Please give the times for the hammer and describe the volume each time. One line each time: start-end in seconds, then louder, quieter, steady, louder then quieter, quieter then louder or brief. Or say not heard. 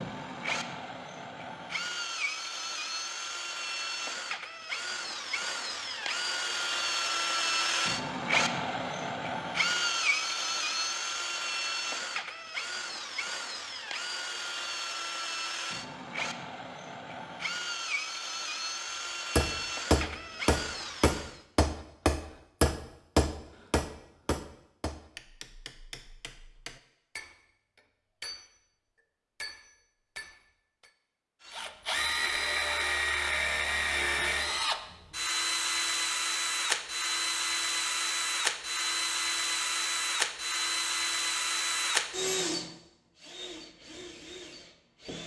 19.4-28.6 quieter
29.4-30.9 brief.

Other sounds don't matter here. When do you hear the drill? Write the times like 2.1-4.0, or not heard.
0.0-21.4, 31.4-45.2.